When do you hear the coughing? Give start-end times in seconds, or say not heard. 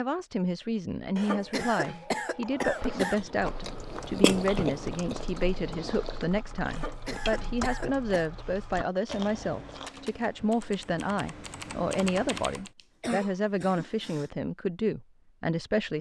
1.1-3.1, 6.7-8.3, 12.8-14.3.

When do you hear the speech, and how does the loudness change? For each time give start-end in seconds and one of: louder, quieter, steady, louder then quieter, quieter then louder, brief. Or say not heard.
0.0-15.9 steady.